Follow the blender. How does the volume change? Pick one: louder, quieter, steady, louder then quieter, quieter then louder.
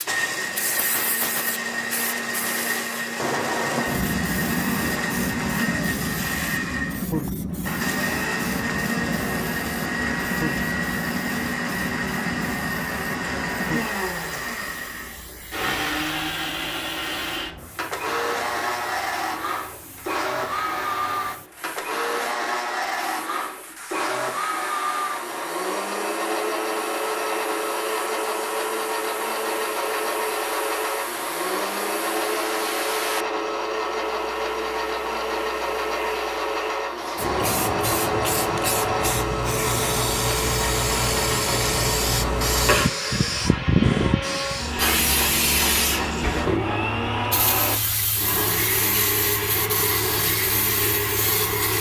steady.